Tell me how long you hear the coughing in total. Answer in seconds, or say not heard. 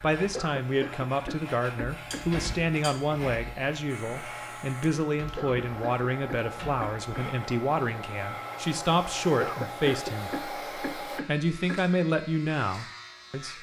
6 s.